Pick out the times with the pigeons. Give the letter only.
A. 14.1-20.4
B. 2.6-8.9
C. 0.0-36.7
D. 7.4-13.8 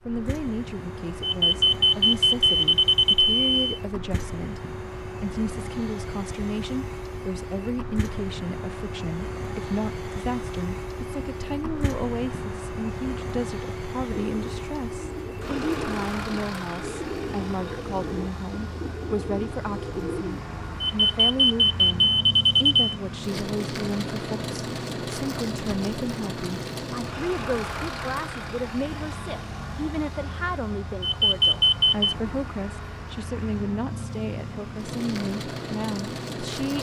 A.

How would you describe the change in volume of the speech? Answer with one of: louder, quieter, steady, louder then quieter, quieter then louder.
steady.